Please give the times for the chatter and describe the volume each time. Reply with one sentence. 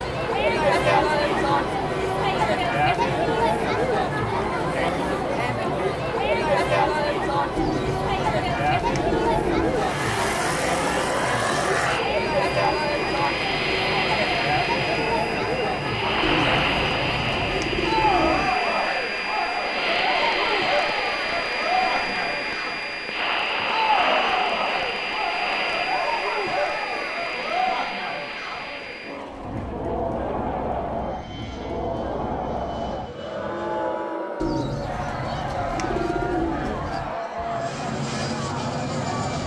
The chatter can be heard from 0.0 to 39.4 s, getting quieter.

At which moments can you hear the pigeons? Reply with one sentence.
The pigeons can be heard from 7.5 to 9.9 s, from 16.2 to 18.6 s and from 34.4 to 37.1 s.